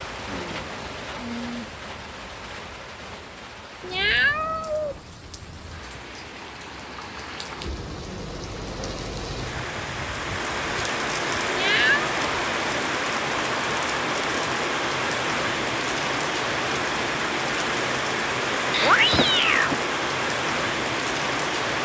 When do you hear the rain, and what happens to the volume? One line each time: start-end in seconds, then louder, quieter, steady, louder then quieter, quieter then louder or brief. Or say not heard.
0.0-21.8 louder.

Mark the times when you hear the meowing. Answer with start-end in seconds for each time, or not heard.
3.8-5.0, 11.4-12.2, 18.7-19.8.